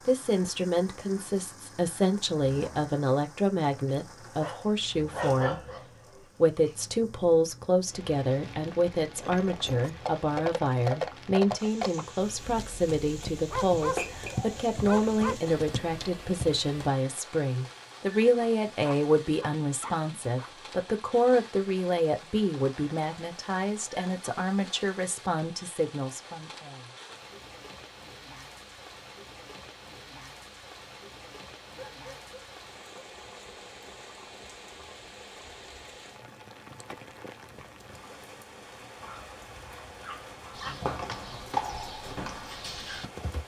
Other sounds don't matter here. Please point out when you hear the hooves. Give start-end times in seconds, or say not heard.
9.2-16.9, 40.5-43.4.